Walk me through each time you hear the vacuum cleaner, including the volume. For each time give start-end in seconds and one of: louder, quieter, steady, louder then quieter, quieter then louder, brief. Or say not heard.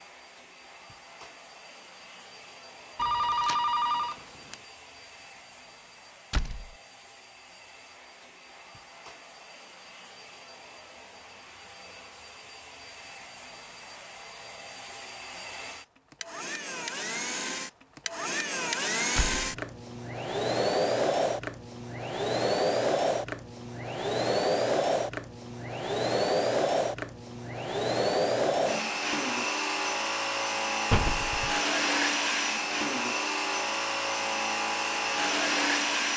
0.0-36.1 louder.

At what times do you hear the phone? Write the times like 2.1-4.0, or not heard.
3.0-4.5.